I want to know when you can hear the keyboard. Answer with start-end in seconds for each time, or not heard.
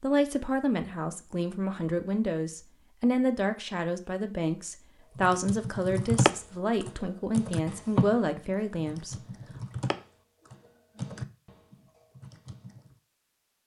5.2-12.9.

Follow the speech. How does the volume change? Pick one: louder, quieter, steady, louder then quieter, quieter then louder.
steady.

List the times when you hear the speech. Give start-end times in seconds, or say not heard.
0.0-9.2.